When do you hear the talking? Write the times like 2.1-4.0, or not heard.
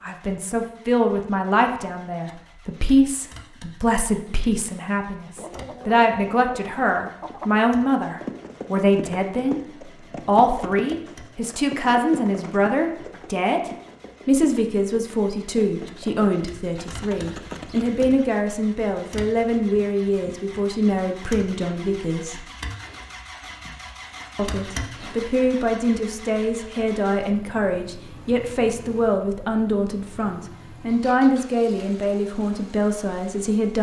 0.0-9.6, 10.2-22.4, 24.4-33.7.